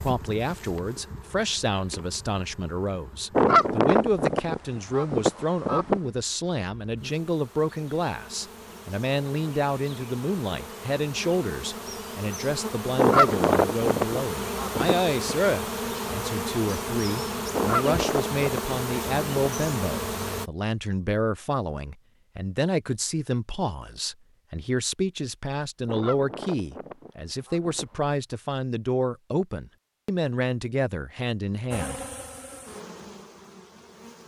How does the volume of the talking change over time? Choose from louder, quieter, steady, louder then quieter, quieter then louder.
steady.